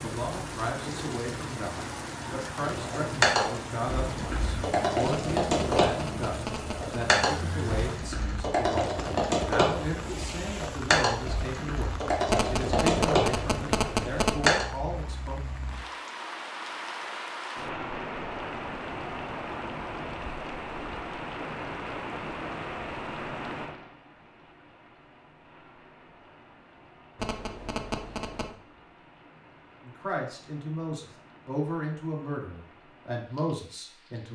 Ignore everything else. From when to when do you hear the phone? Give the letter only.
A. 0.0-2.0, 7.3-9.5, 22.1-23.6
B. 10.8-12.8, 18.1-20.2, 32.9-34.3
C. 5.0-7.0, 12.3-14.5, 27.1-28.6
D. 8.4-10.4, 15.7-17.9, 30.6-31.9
C.